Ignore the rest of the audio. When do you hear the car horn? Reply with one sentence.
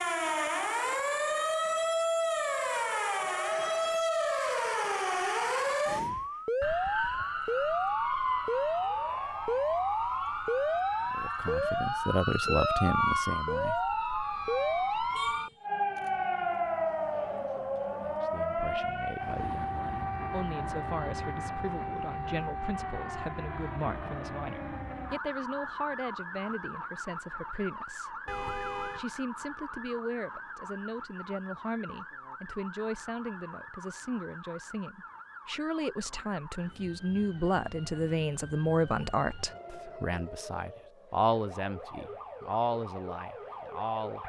You can hear the car horn from 15.2 to 15.6 s and from 28.2 to 29.1 s.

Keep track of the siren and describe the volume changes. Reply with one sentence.
The volume of the siren goes down.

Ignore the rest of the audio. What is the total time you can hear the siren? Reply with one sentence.
The siren can be heard for 44 seconds in total.